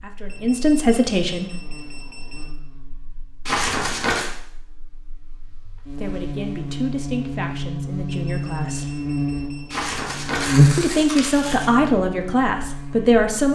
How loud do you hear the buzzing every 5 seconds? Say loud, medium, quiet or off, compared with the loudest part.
quiet, medium, loud.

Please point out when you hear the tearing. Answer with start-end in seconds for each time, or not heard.
3.5-4.3, 9.7-11.7.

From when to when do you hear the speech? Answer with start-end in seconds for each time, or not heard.
0.0-1.6, 5.8-9.0, 10.8-13.5.